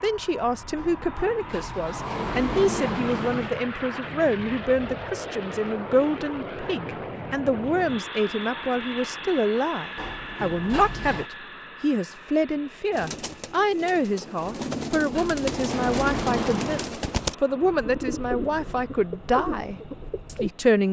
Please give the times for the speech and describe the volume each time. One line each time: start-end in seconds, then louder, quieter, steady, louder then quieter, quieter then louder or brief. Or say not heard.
0.0-20.8 steady.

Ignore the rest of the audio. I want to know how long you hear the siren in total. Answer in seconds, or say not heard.
not heard.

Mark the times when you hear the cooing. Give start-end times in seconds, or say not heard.
12.9-20.5.